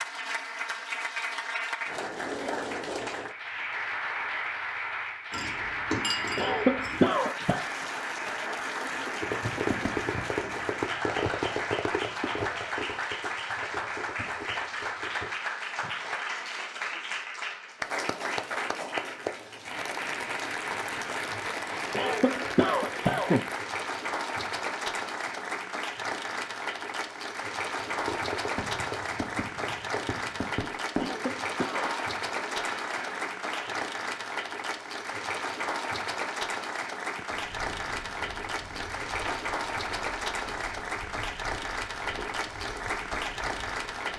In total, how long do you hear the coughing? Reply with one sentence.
You can hear the coughing for 4 seconds altogether.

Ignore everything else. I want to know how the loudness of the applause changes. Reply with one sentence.
The volume of the applause stays about the same.